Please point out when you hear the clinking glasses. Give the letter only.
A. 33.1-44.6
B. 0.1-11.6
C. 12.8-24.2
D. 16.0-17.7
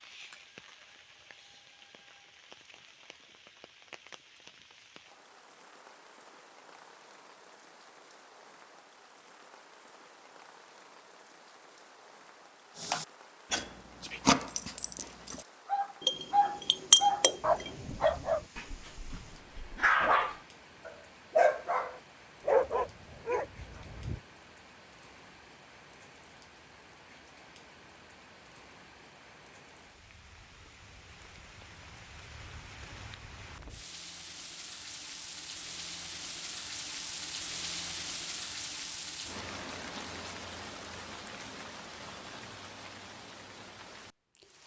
D.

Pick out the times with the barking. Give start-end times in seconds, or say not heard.
12.8-24.2.